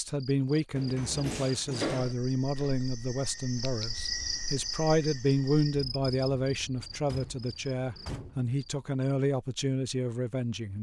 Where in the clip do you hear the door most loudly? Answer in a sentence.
The loudest moment of the door is at 2 seconds.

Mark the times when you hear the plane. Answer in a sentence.
The plane can't be heard in this clip.